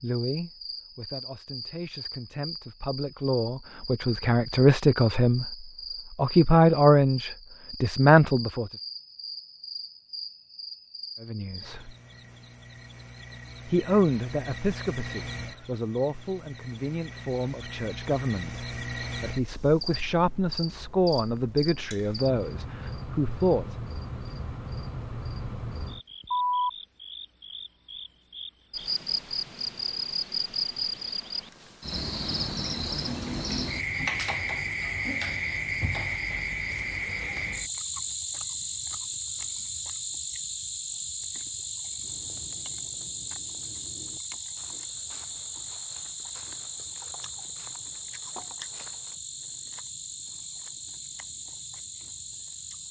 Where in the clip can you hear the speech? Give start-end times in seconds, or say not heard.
0.0-8.7, 11.2-11.9, 13.7-23.8.